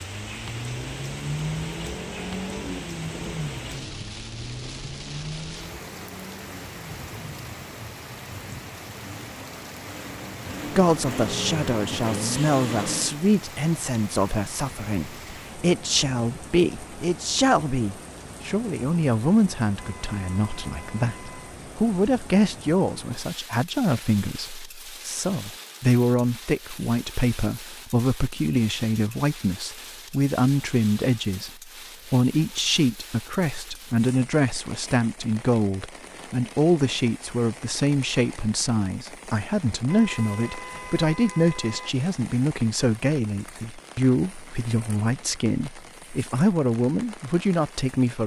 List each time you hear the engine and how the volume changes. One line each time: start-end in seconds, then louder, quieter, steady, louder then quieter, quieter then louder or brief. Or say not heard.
0.0-13.2 quieter then louder.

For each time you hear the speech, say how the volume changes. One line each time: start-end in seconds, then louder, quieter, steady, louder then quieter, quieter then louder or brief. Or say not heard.
10.8-31.5 steady
32.1-48.2 steady.